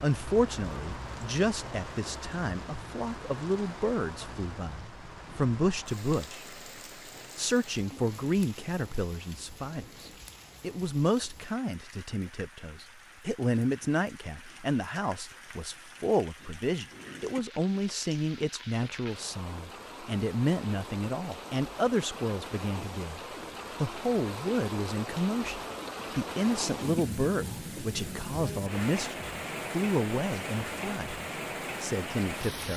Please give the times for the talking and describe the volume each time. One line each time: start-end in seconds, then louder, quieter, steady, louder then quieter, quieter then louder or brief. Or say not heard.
0.0-6.5 quieter then louder
7.3-31.2 steady
31.8-32.7 brief.